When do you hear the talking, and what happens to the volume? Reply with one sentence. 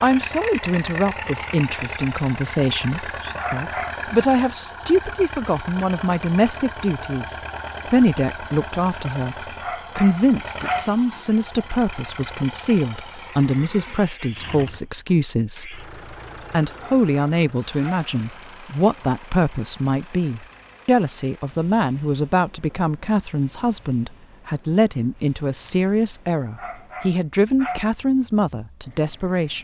You can hear the talking from 0.0 to 15.8 s, at a steady volume; and from 16.5 to 29.5 s, at a steady volume.